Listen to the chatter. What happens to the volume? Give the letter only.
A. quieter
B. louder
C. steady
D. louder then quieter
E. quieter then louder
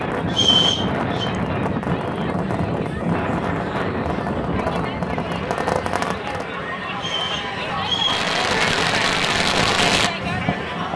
B.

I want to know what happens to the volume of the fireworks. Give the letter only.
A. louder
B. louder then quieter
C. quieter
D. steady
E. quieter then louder
A.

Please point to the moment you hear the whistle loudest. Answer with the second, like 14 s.
1 s.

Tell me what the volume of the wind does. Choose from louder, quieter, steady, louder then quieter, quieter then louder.
quieter.